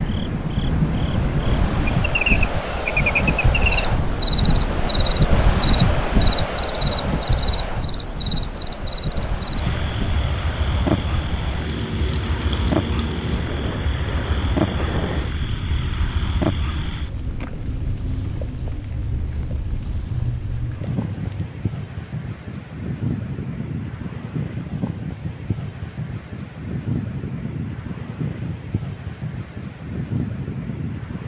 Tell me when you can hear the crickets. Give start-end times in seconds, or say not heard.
0.0-21.4.